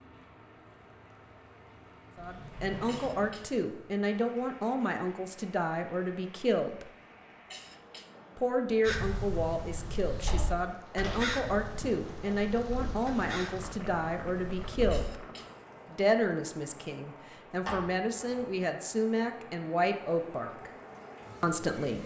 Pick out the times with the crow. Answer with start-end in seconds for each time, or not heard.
8.8-15.1.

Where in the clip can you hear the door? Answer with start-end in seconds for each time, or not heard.
2.1-3.4, 10.1-11.3, 17.6-18.5.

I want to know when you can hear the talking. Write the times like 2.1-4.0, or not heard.
2.1-6.8, 8.3-15.2, 15.9-20.7, 21.4-22.0.